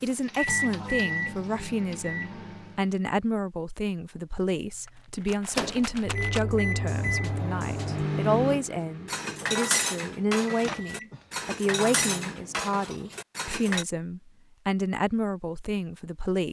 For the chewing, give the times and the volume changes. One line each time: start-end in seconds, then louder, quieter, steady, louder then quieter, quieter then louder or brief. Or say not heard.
not heard.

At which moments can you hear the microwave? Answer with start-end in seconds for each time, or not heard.
0.0-3.0, 5.4-12.7.